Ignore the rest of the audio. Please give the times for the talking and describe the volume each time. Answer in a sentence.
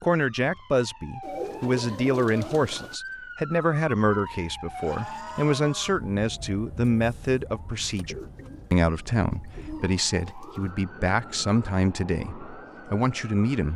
The talking can be heard from 0.0 to 13.7 s, at a steady volume.